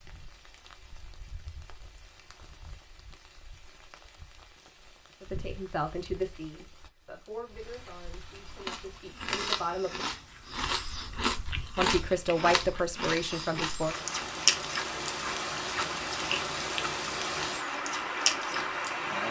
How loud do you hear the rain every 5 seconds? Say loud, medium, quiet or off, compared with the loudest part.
quiet, quiet, medium, loud.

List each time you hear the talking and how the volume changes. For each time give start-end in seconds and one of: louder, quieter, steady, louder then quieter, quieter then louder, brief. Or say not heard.
5.2-10.1 quieter then louder
11.8-13.9 brief.